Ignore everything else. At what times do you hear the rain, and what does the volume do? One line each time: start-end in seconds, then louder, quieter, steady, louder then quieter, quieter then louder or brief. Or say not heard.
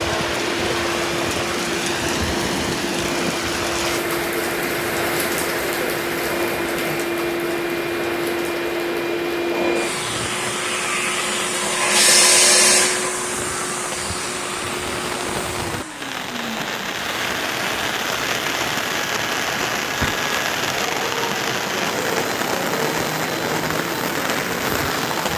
0.0-25.3 quieter then louder.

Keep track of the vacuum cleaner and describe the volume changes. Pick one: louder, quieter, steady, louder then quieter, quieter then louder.
louder then quieter.